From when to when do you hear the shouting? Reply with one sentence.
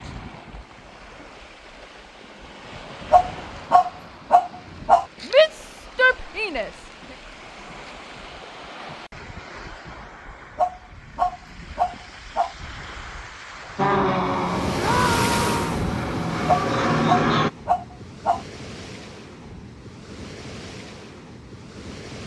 You can hear the shouting from 5.3 to 6.7 s and from 14.8 to 15.8 s.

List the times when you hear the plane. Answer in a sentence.
You can hear the plane from 13.8 to 17.5 s.